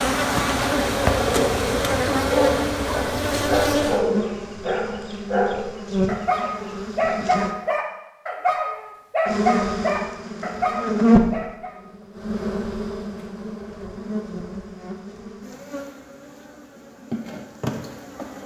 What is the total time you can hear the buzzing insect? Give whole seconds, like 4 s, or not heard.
17 s.